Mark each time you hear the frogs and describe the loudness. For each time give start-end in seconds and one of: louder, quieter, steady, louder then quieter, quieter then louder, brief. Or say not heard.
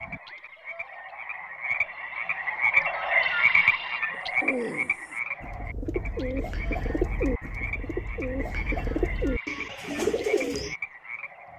0.0-11.5 louder then quieter.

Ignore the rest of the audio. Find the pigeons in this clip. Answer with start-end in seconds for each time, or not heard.
4.2-10.8.